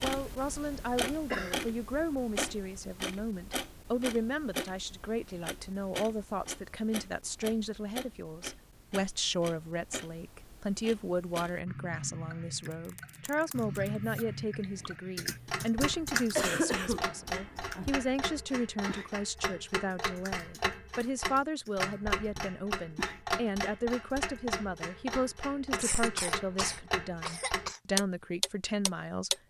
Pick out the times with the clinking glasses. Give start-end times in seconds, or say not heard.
not heard.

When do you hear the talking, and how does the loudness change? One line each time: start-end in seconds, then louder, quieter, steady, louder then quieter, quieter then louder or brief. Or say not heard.
0.0-29.3 steady.